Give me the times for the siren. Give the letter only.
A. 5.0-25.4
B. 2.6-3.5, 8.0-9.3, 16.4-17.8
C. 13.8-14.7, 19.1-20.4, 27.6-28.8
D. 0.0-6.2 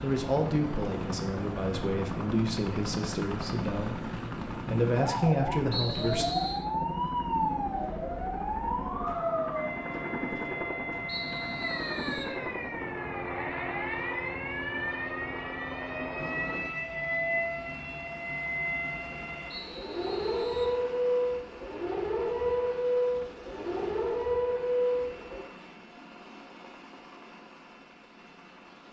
A.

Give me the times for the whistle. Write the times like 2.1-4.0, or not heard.
5.7-6.6, 11.1-12.3, 19.5-20.8.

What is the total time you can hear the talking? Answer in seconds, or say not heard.
6 s.